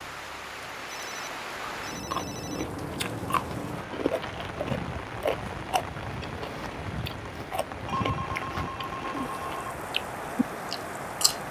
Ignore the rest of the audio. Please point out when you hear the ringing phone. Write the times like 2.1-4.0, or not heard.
0.8-2.6, 7.8-9.8.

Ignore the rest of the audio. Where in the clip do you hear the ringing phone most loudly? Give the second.
8 s.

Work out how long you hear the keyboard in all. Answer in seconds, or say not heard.
not heard.